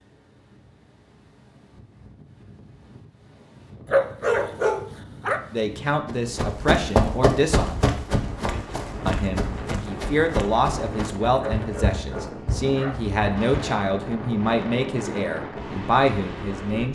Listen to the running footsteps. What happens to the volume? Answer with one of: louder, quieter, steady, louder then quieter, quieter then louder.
quieter.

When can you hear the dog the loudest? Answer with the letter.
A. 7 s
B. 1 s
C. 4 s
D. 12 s
C.